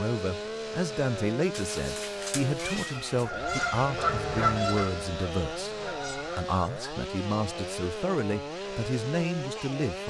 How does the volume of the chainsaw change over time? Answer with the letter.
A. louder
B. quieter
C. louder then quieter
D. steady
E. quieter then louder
D.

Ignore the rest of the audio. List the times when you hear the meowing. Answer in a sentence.
You can hear the meowing from 1.5 to 3.2 s.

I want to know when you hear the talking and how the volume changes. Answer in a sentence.
You can hear the talking from 0.0 to 10.0 s, at a steady volume.